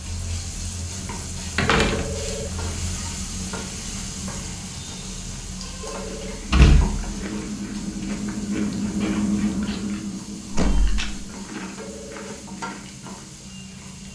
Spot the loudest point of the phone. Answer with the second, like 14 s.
2 s.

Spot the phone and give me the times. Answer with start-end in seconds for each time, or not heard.
1.8-2.6, 5.8-6.5, 11.8-12.5.